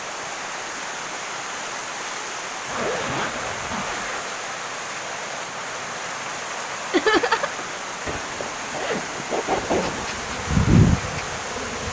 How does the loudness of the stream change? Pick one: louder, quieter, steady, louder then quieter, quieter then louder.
steady.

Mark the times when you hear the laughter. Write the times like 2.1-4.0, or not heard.
6.9-7.7.